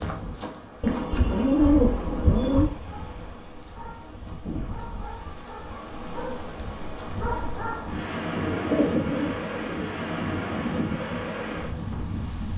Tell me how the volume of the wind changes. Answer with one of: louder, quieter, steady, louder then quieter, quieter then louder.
louder.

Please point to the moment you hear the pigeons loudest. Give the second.
2 s.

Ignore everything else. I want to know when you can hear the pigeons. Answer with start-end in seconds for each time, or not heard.
0.8-2.7, 8.3-9.9.